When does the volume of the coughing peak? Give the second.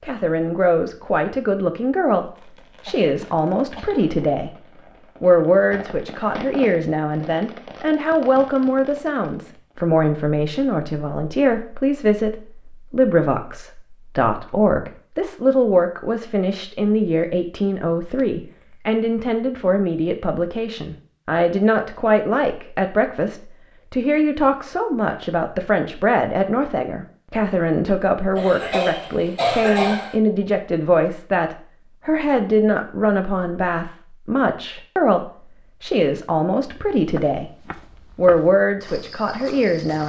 30 s.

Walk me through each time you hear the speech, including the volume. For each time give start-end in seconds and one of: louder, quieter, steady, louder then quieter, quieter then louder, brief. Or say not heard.
0.0-4.5 steady
5.2-37.5 steady
38.1-40.0 brief.